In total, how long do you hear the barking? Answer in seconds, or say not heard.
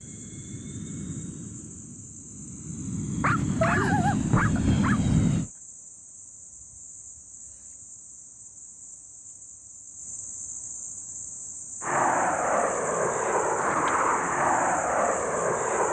2 s.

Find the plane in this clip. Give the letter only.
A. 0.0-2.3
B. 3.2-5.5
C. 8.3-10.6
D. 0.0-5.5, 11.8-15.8
D.